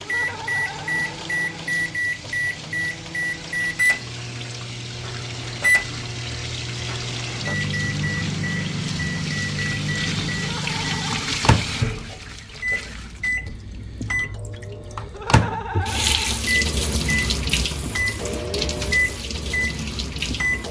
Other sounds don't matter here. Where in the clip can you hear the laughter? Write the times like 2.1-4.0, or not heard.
0.0-1.7, 10.3-11.2, 15.1-16.4.